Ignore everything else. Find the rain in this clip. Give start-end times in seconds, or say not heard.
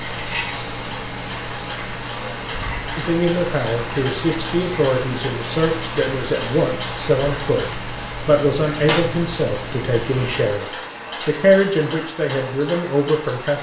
0.0-10.6.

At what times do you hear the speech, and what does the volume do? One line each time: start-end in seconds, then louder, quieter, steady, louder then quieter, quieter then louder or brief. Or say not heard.
3.0-10.7 steady
11.2-13.5 brief.